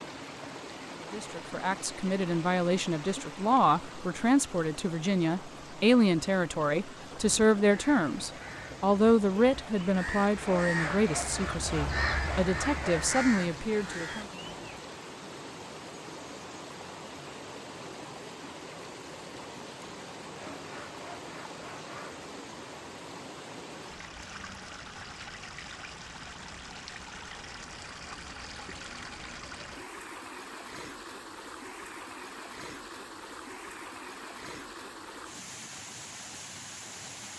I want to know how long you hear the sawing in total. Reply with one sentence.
The sawing can be heard for 5 seconds in total.